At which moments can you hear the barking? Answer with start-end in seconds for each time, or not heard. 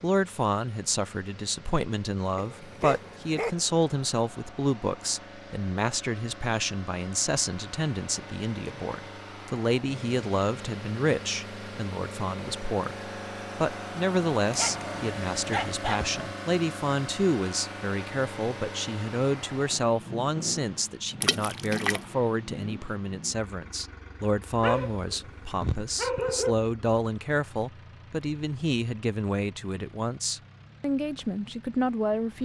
2.4-3.5, 14.5-16.3, 24.6-26.6.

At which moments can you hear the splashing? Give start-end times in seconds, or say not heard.
21.2-22.1.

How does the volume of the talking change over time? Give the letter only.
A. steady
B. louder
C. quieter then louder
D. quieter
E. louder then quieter
A.